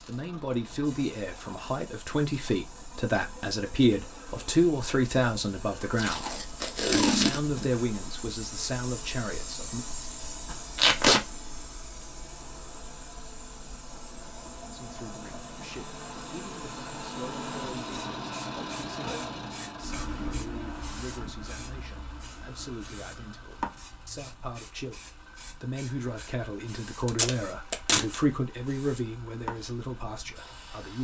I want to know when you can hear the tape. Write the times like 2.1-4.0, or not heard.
6.0-7.7, 10.8-11.2, 27.1-28.1.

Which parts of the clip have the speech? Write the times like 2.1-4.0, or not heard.
0.1-9.8, 14.7-30.9.